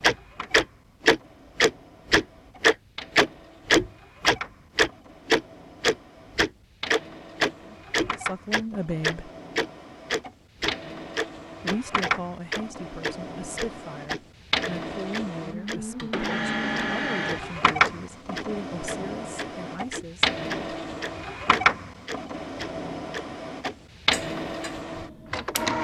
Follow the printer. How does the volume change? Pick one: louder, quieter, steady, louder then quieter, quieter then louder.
louder.